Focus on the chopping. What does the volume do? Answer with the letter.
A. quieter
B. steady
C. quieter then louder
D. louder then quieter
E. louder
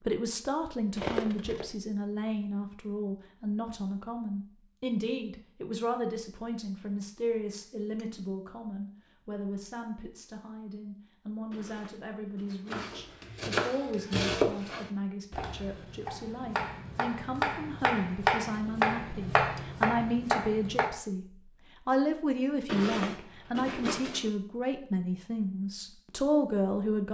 C.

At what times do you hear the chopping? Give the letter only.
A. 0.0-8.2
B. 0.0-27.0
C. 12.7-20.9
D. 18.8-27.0
C.